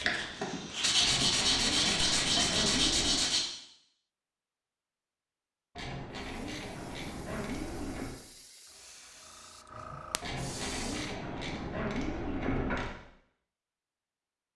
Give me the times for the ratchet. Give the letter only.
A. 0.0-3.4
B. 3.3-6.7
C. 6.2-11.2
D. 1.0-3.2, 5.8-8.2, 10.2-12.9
D.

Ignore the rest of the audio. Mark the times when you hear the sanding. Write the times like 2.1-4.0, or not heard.
0.0-3.4.